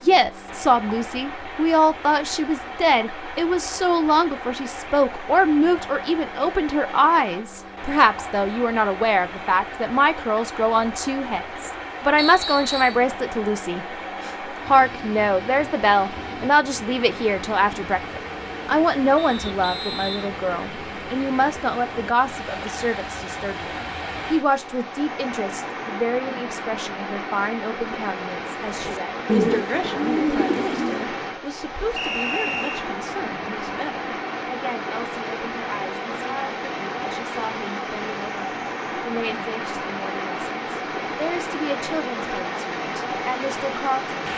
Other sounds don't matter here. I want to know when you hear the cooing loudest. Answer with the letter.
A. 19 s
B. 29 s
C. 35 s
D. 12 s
B.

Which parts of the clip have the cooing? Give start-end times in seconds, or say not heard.
28.6-31.1.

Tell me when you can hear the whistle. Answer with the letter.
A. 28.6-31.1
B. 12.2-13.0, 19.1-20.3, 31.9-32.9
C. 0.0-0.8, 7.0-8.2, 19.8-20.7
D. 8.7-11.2
B.